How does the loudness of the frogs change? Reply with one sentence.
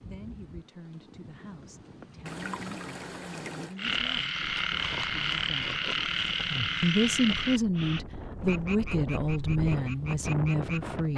The loudness of the frogs goes down.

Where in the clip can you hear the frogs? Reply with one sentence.
The frogs can be heard from 3.8 to 11.1 s.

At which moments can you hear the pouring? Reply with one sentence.
The pouring can be heard from 2.2 to 3.8 s.